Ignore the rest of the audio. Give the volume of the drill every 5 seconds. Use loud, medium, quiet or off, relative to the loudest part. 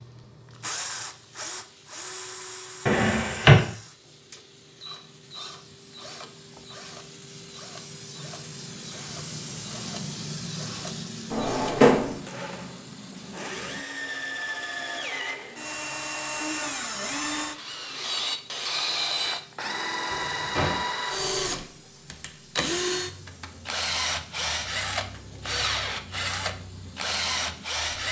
medium, quiet, medium, loud, loud, loud.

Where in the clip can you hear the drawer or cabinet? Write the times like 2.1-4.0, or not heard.
2.9-3.6, 11.3-12.2, 20.1-20.9.